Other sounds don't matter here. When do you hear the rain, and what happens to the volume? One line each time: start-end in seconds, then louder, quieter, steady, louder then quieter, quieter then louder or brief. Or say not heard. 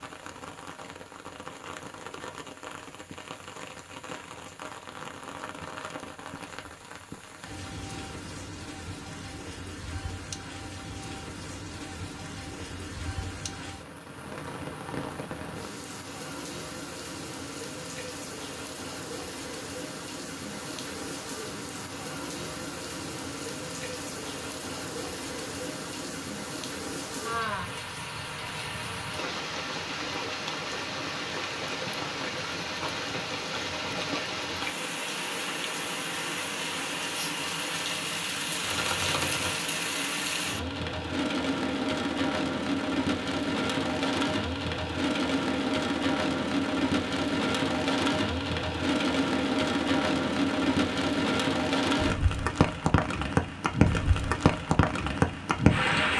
0.0-56.1 louder.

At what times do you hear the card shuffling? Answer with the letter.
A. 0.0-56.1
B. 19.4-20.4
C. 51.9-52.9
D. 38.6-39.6
D.